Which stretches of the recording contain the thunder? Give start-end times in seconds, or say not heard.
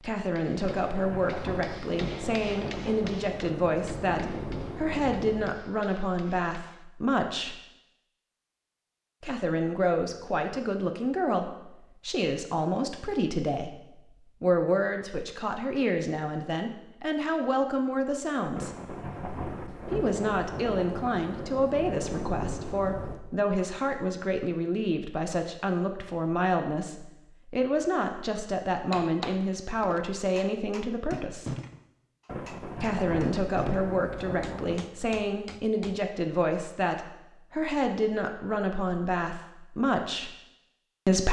0.6-5.6, 18.6-23.2, 32.2-34.9.